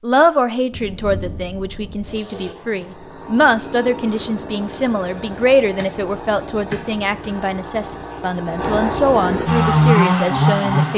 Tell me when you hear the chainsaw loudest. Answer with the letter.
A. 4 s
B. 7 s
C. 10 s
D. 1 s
C.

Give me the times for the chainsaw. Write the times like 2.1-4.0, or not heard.
2.0-10.9.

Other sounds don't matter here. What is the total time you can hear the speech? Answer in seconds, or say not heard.
11 s.